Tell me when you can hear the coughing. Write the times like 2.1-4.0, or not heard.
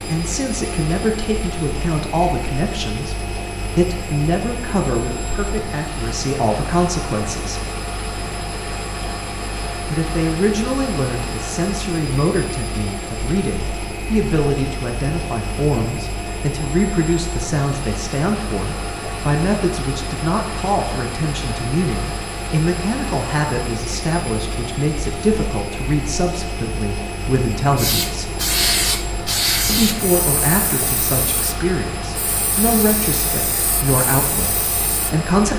not heard.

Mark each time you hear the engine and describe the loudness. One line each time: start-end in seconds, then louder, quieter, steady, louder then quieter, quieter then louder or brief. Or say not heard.
0.0-35.5 steady.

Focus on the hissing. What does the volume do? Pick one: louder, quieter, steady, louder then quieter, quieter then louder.
quieter.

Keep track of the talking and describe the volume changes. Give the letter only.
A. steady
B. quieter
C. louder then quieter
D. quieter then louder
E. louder
A.